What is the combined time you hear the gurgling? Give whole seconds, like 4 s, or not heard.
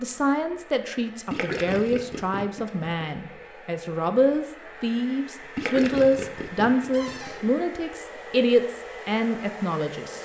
4 s.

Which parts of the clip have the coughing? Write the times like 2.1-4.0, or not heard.
not heard.